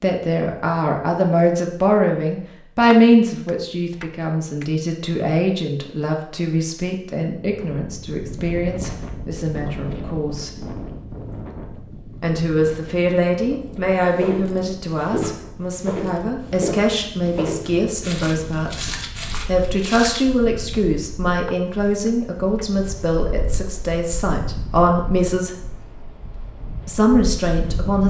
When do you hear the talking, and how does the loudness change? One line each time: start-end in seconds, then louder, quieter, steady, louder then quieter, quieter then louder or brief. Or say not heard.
0.0-10.5 quieter
12.2-25.5 steady
26.9-28.0 brief.